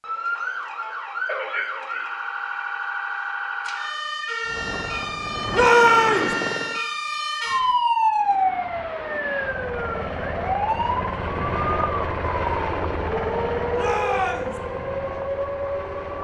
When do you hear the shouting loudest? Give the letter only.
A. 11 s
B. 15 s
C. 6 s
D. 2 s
C.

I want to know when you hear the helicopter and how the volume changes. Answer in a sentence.
The helicopter can be heard briefly from 4.5 to 6.8 s; and from 8.1 to 16.1 s, getting louder then quieter.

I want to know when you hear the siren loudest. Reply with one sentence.
The volume of the siren peaks at 8 seconds.